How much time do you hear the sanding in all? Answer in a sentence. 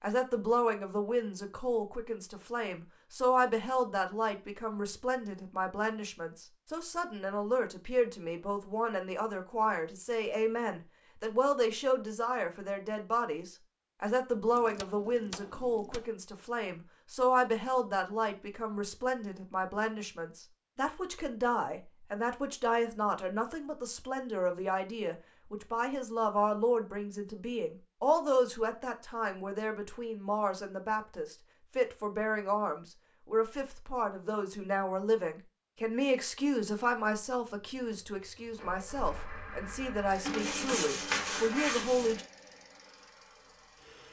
You can hear the sanding for 2 seconds altogether.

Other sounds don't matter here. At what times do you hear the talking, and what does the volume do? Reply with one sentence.
You can hear the talking from 0.0 to 42.2 s, at a steady volume.